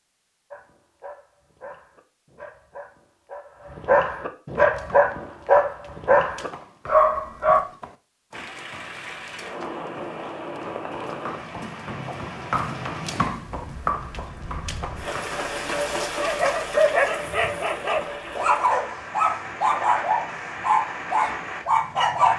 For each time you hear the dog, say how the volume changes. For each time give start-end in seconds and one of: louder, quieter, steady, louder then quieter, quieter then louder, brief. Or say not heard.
0.5-7.6 louder
16.2-22.3 steady.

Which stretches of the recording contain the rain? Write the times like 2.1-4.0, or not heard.
8.3-22.3.